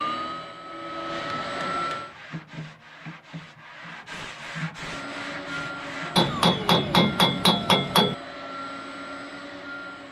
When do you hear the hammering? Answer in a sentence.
The hammering can be heard from 1.2 to 2.4 s and from 6.2 to 8.2 s.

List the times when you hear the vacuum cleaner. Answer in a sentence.
The vacuum cleaner can be heard from 0.0 to 2.1 s and from 4.8 to 10.0 s.